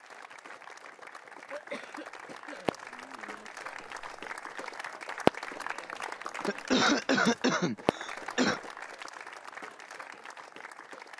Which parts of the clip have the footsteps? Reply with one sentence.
You can't hear the footsteps here.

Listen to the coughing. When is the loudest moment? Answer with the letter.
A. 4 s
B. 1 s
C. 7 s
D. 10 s
C.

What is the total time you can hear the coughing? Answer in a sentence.
You can hear the coughing for 4 seconds altogether.